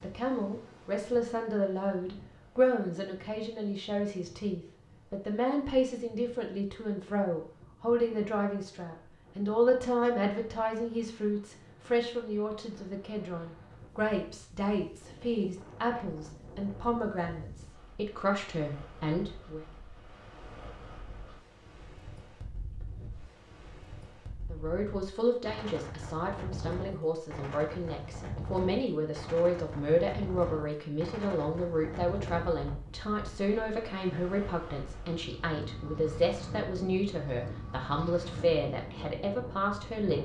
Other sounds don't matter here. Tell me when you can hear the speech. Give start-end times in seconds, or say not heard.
0.0-19.6, 24.5-40.2.